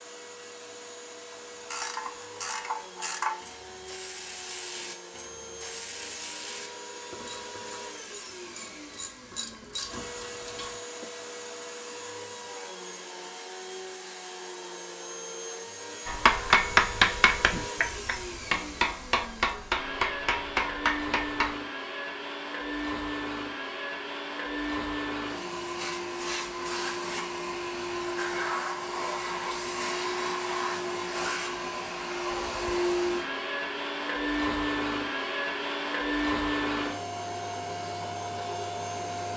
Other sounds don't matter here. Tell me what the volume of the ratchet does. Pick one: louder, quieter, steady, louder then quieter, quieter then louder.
quieter then louder.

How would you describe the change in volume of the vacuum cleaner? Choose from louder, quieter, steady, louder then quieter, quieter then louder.
louder.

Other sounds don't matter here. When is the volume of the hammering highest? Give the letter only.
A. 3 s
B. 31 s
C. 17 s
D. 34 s
C.